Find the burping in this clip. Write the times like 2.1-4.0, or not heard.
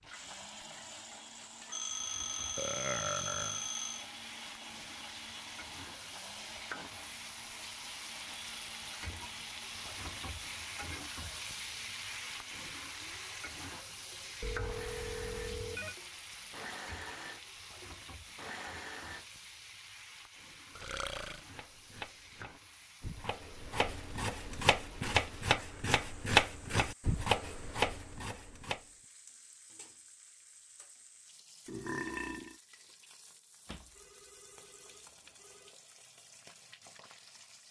2.5-3.6, 20.8-21.4, 31.6-32.5.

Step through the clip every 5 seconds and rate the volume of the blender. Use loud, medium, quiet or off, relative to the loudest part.
loud, loud, medium, loud, off, off, off, off.